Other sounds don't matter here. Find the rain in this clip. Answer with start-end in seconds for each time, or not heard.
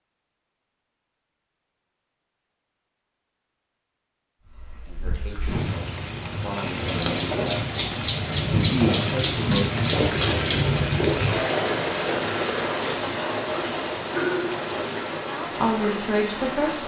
4.5-16.8.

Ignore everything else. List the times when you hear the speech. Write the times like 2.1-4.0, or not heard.
4.8-9.8, 15.2-16.8.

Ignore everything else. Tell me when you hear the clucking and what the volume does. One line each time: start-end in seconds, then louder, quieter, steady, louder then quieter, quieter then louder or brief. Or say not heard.
not heard.